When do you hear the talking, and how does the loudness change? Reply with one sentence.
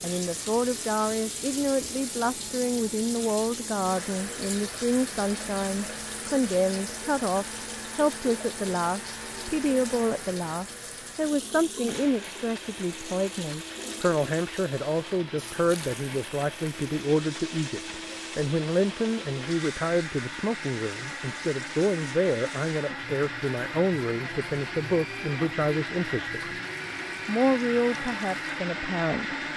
The talking can be heard from 0.0 to 26.6 s, at a steady volume; and briefly from 27.2 to 29.4 s.